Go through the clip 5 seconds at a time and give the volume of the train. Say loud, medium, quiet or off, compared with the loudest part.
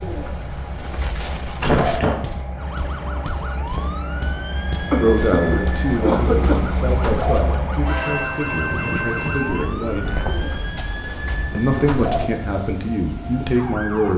medium, loud, medium.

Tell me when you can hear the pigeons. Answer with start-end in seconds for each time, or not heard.
0.0-2.0, 5.4-7.4, 10.2-12.2.